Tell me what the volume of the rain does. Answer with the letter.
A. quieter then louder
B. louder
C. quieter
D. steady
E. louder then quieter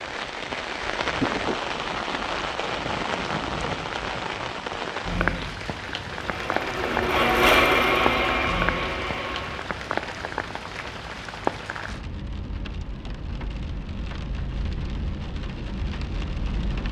C.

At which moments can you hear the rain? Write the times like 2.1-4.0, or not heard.
0.0-16.8.